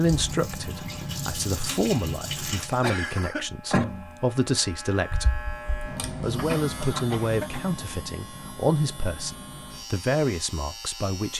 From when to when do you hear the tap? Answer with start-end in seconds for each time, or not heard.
0.0-2.9.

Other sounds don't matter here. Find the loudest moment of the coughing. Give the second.
3 s.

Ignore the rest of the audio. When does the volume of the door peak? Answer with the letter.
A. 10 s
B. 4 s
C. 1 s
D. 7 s
B.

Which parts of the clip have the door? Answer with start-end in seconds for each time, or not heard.
2.6-4.1, 6.3-7.0.